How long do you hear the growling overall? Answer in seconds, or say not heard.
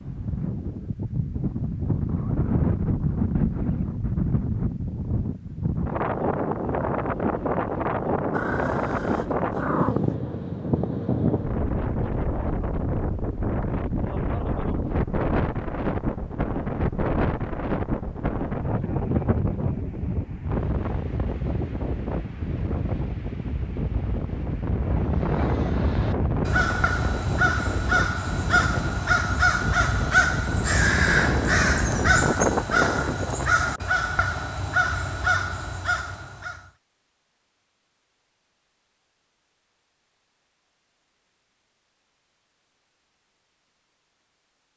2 s.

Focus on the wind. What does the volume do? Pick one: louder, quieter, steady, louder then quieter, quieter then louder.
steady.